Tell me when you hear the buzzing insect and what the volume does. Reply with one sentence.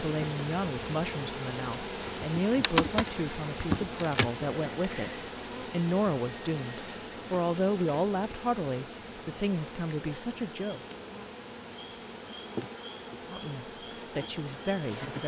The buzzing insect can be heard from 0.0 to 15.2 s, getting quieter.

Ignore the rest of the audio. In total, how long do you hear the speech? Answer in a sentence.
The speech can be heard for 13 seconds in total.